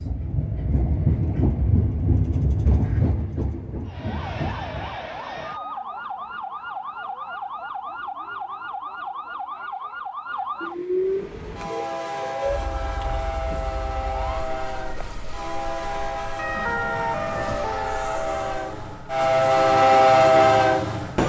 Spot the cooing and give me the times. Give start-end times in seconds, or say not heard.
not heard.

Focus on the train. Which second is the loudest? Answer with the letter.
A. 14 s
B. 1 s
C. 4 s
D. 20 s
D.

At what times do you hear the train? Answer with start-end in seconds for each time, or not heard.
0.0-5.0, 11.0-21.2.